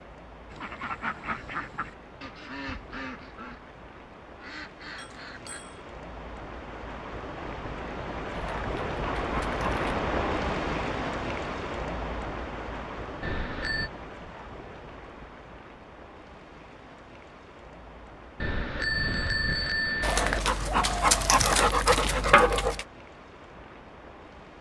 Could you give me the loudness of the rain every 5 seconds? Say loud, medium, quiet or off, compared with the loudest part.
quiet, loud, loud, quiet, quiet.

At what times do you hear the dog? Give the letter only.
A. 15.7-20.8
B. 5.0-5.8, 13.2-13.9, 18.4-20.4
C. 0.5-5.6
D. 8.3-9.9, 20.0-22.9
D.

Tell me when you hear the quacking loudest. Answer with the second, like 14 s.
1 s.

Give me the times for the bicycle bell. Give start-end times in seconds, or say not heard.
5.0-5.8, 13.2-13.9, 18.4-20.4.